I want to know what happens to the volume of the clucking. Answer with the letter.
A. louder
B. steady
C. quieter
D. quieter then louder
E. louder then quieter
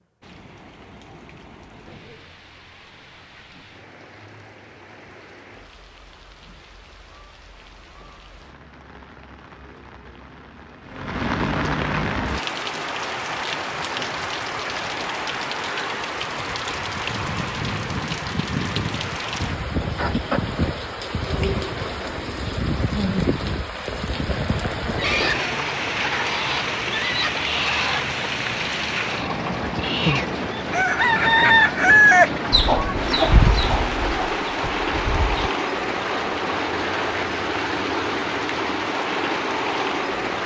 E.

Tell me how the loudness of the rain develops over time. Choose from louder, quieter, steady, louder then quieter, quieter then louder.
louder.